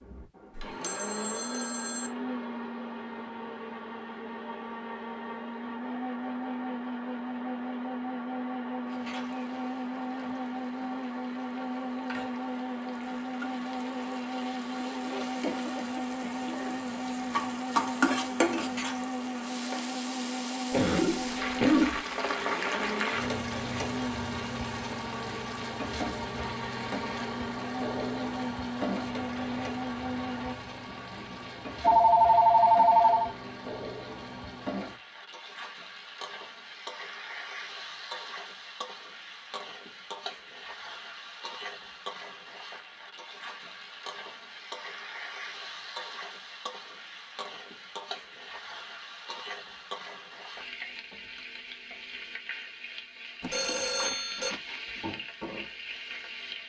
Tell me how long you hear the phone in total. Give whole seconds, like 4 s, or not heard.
5 s.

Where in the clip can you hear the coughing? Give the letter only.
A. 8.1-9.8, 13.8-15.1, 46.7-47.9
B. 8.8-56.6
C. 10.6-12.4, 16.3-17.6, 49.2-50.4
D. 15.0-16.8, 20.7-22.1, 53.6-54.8
D.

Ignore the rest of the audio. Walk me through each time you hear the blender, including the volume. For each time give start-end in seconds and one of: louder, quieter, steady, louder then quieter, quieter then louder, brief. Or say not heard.
0.0-30.6 steady.